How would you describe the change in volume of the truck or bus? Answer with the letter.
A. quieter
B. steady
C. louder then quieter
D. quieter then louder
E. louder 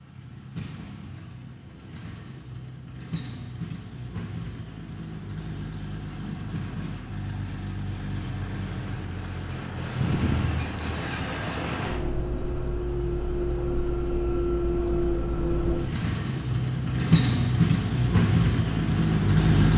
E.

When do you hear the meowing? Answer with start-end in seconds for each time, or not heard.
10.0-10.7.